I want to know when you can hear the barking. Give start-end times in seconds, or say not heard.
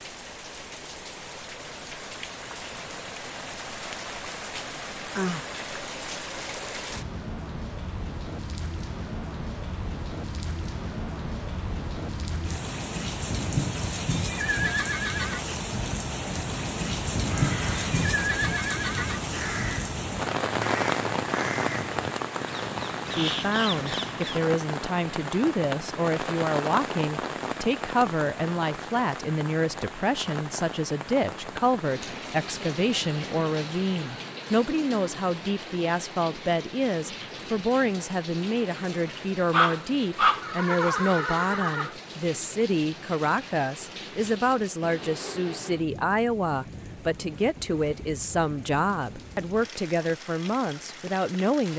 39.5-41.0.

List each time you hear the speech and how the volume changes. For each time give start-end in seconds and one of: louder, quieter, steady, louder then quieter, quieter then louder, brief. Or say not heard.
23.1-51.7 steady.